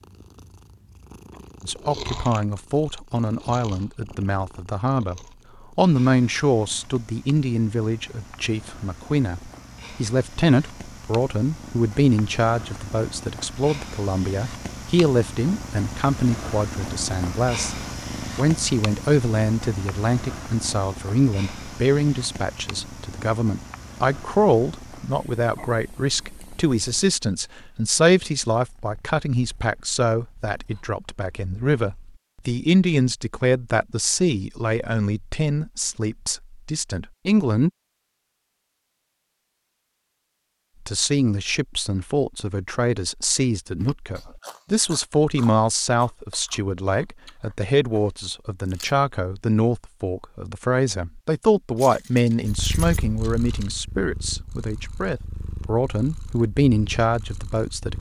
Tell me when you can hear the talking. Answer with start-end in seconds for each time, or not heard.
1.6-17.8, 18.4-37.7, 40.9-57.9.